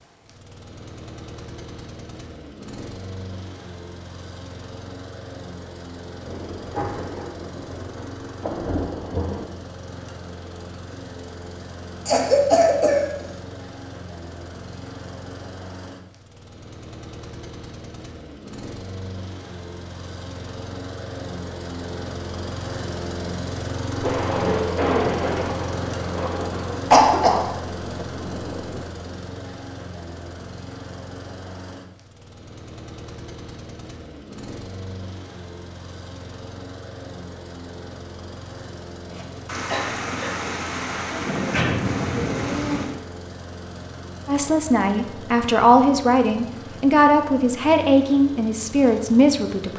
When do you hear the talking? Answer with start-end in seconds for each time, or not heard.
44.2-49.7.